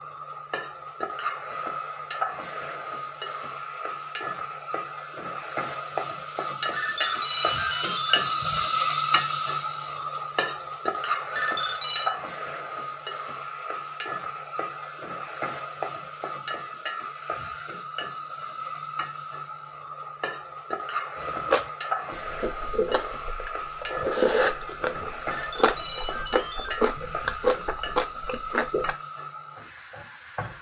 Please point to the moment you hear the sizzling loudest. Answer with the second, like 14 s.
9 s.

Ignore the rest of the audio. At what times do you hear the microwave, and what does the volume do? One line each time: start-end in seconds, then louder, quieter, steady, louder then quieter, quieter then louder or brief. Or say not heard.
not heard.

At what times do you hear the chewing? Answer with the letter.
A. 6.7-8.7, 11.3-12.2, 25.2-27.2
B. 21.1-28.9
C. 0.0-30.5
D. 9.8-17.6
B.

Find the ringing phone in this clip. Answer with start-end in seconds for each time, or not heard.
6.7-8.7, 11.3-12.2, 25.2-27.2.